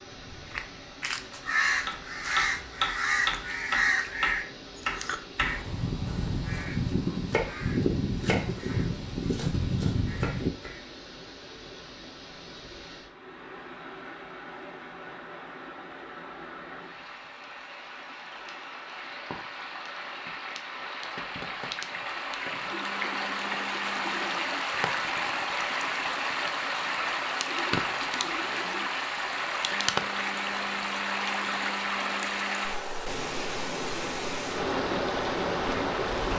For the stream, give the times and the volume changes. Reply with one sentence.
You can hear the stream from 0.0 to 36.3 s, getting louder.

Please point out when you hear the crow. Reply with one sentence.
You can hear the crow from 0.3 to 10.8 s.